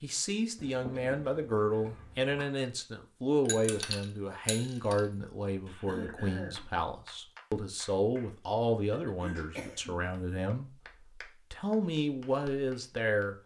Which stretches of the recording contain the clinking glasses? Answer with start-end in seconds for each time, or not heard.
3.5-5.0.